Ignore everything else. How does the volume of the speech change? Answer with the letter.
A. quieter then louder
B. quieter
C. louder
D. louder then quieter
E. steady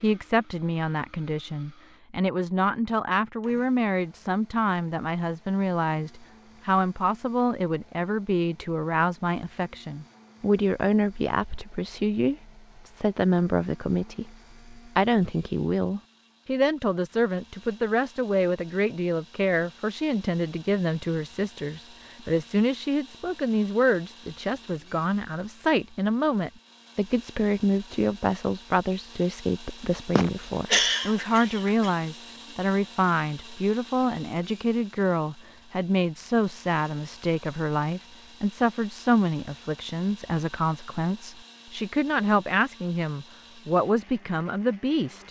E.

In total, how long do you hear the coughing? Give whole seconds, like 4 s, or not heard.
2 s.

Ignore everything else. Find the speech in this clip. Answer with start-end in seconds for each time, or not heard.
0.0-45.2.